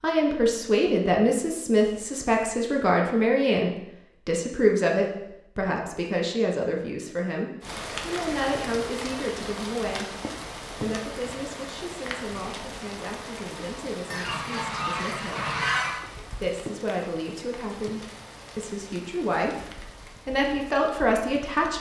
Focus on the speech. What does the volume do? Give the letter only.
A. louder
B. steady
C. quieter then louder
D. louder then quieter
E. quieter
C.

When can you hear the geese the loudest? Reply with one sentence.
The volume of the geese peaks at 16 seconds.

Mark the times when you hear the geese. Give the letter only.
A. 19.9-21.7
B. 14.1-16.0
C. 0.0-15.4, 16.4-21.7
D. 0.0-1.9
B.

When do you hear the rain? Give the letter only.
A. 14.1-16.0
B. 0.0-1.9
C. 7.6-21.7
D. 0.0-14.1
C.